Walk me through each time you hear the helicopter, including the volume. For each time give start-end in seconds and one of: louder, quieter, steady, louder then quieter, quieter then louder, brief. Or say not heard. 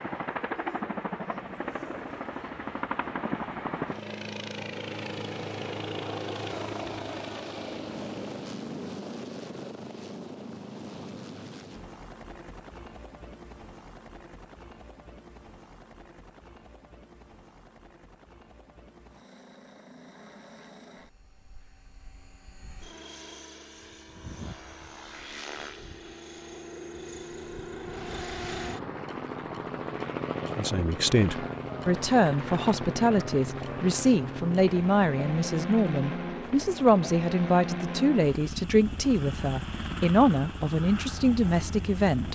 0.0-42.3 quieter then louder.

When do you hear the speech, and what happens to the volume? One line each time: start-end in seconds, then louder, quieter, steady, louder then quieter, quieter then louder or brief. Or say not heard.
30.6-42.3 steady.